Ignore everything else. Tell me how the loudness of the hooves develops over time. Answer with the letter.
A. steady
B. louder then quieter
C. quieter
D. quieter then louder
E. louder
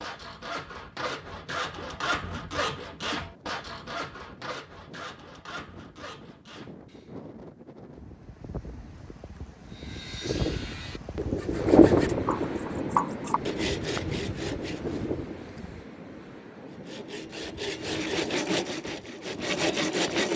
B.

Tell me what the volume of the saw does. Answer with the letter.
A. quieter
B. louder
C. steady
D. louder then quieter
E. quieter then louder
E.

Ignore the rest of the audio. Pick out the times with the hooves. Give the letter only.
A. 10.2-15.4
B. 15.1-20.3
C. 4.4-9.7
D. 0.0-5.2
A.